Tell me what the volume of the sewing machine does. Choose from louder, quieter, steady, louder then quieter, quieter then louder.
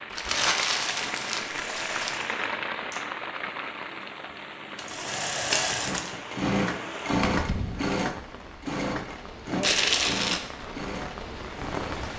louder then quieter.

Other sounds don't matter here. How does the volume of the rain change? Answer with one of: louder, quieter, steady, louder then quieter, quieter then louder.
quieter.